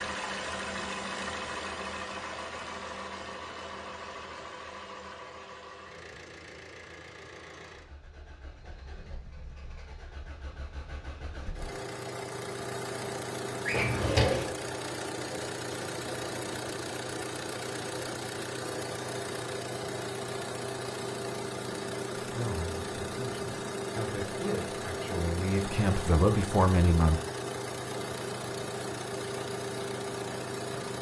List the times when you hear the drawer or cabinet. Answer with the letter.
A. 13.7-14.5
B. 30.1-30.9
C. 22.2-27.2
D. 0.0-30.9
A.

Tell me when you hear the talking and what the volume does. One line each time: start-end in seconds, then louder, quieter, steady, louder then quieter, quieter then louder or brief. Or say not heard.
22.2-27.2 louder.